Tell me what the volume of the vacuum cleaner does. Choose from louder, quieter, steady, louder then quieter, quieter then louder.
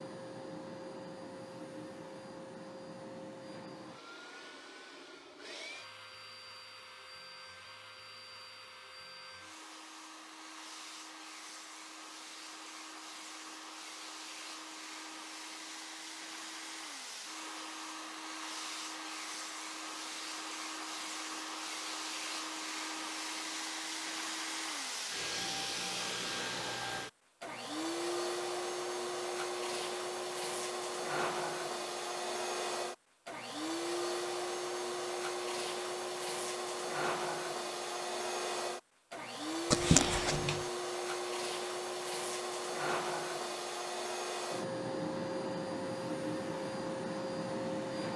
louder.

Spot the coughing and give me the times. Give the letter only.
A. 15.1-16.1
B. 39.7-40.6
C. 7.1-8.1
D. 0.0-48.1
B.